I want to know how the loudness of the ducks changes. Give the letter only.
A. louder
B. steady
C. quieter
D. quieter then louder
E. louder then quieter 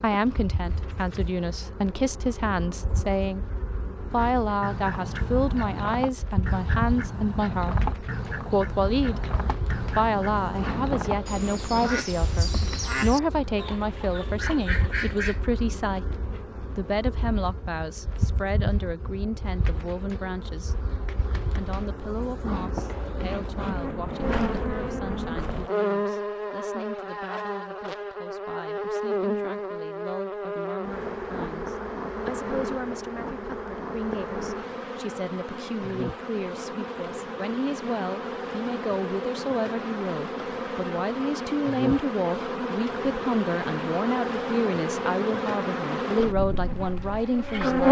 B.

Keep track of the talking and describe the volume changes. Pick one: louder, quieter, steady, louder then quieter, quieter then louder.
quieter then louder.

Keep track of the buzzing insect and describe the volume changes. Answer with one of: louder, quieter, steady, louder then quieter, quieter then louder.
louder.